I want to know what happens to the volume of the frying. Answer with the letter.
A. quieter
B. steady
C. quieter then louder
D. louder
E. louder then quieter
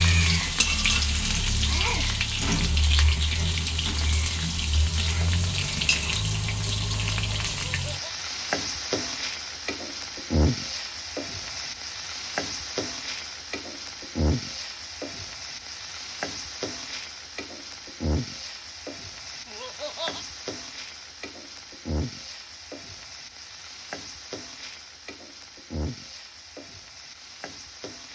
A.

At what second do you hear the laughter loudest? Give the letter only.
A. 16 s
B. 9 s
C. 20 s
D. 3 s
C.